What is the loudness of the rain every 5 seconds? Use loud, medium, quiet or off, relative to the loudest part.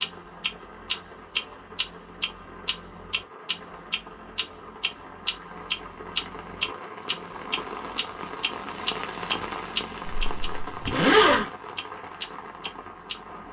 medium, loud, loud.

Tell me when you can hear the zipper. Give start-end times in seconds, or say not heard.
10.1-11.5.